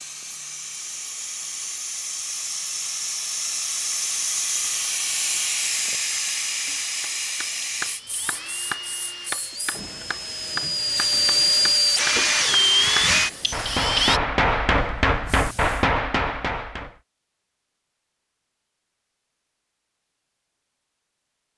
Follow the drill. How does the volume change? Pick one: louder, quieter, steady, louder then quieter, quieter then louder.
louder.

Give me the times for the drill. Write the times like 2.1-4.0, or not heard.
7.8-14.2.